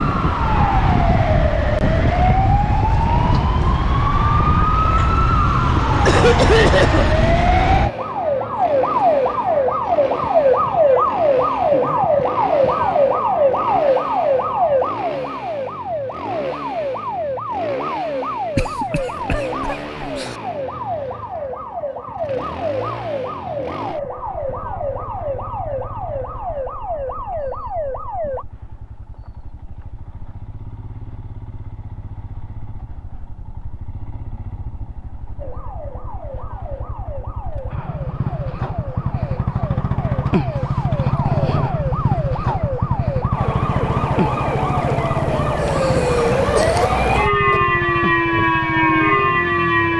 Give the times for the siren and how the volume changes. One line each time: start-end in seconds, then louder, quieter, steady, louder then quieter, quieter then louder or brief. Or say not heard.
0.0-28.4 quieter
35.4-49.9 louder.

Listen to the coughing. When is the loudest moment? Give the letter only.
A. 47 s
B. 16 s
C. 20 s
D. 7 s
D.